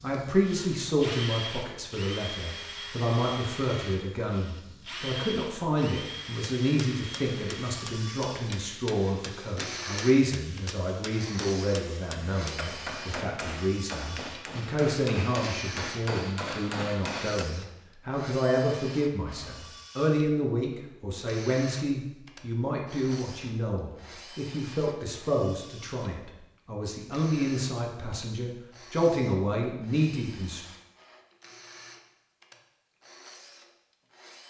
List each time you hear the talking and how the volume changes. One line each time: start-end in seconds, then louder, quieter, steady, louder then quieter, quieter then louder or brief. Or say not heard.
0.0-30.6 steady.